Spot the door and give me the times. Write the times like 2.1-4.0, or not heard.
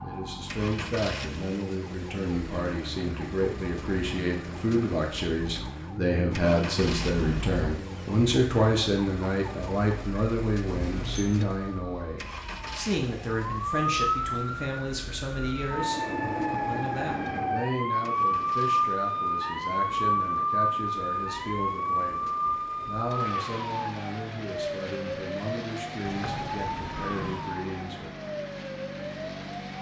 7.0-7.6, 10.7-11.4, 26.1-27.5.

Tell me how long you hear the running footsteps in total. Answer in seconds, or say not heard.
not heard.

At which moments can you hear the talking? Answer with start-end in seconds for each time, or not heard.
0.0-28.1.